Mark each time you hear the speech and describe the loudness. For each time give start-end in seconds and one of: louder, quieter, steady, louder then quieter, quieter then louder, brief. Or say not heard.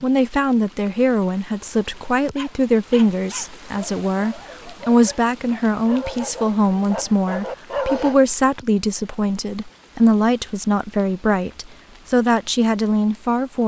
0.0-13.6 steady.